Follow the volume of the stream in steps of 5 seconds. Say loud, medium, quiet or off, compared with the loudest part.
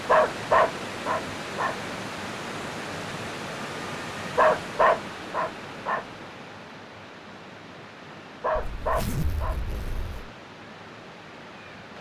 loud, medium, medium.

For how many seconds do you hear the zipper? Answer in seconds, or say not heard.
2 s.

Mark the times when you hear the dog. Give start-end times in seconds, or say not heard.
0.1-1.8, 4.3-6.0, 8.4-9.6.